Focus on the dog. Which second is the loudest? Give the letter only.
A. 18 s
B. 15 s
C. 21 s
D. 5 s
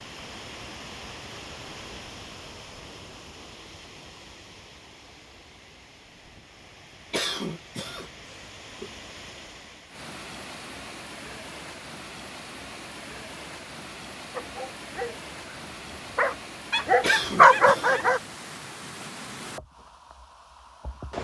A.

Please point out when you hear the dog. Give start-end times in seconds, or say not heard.
14.3-18.2.